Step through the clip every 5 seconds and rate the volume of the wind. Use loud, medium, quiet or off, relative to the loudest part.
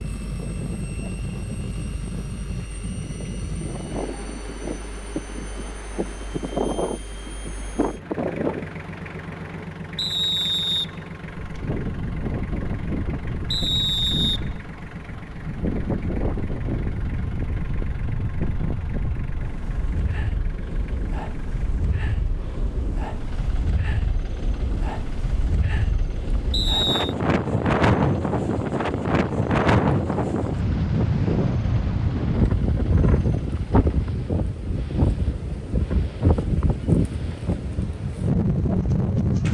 medium, medium, medium, medium, medium, loud, loud, loud.